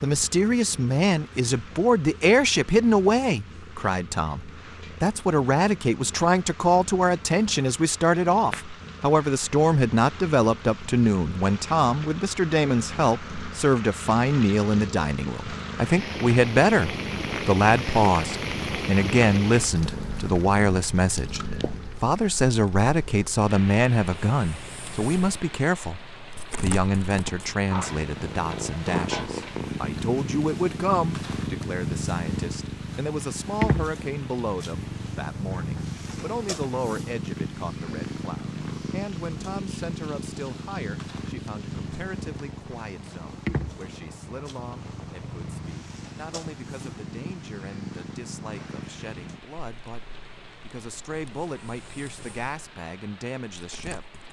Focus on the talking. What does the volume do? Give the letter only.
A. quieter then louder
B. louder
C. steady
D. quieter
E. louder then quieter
D.